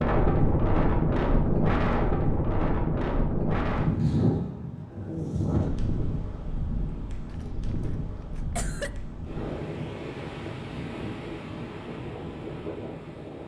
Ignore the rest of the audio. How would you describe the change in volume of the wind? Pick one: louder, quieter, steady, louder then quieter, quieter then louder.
quieter.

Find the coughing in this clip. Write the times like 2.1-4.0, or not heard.
7.3-8.9.